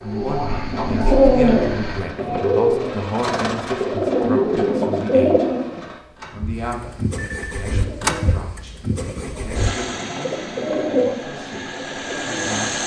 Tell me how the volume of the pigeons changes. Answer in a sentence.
The loudness of the pigeons goes down, then up.